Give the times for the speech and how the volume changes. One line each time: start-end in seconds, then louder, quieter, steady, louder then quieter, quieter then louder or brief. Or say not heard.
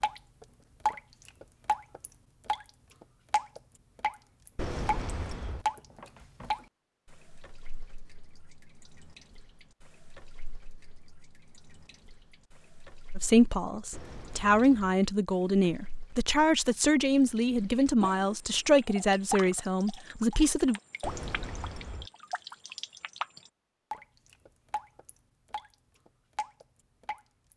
13.2-20.8 steady.